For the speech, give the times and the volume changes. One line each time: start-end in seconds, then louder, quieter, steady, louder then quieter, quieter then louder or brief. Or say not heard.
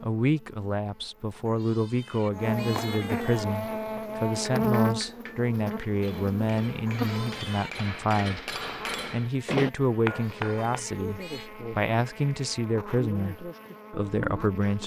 0.0-14.8 steady.